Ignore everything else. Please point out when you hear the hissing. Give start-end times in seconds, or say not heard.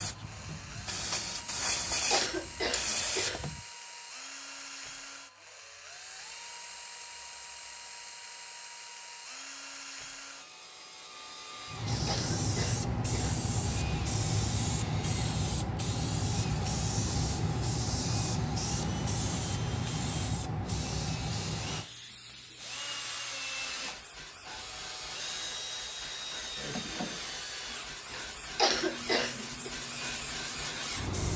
0.0-3.6, 11.7-31.3.